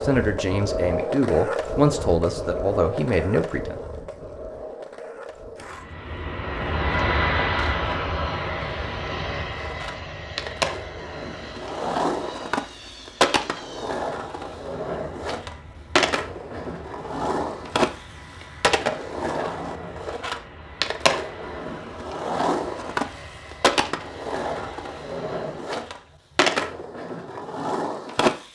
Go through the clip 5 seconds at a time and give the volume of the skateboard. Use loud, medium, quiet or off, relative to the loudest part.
loud, quiet, loud, loud, loud, loud.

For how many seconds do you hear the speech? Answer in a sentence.
The speech can be heard for 4 seconds in total.